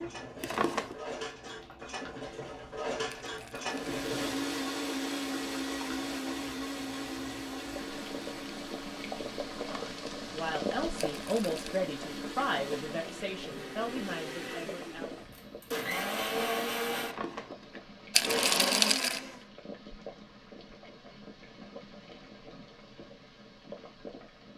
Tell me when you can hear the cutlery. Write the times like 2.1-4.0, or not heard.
0.0-4.3.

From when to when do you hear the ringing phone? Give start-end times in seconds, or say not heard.
not heard.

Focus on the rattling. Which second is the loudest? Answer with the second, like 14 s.
19 s.